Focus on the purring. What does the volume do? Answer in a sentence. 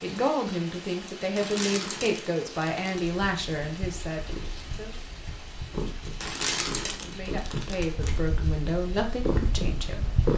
The loudness of the purring goes up.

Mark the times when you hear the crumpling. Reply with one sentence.
The crumpling can be heard from 1.4 to 3.0 s and from 6.2 to 8.2 s.